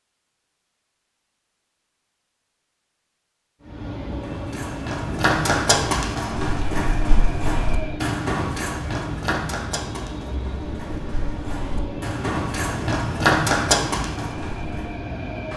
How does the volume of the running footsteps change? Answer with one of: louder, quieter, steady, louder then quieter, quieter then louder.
quieter then louder.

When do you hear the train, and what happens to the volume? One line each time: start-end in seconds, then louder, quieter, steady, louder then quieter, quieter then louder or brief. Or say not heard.
3.6-15.5 steady.